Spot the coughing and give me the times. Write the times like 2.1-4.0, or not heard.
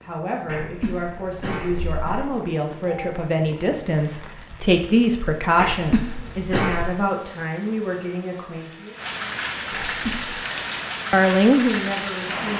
0.5-2.2, 5.5-6.9, 9.7-10.4.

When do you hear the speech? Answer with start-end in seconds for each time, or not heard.
0.0-8.9, 11.1-12.5.